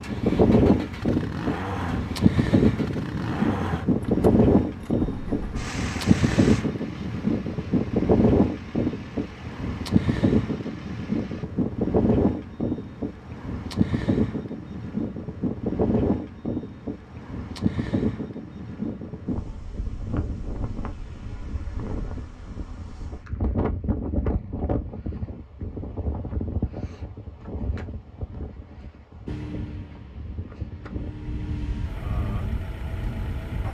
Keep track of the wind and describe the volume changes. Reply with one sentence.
The volume of the wind goes down.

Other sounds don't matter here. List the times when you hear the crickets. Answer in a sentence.
You can't hear the crickets here.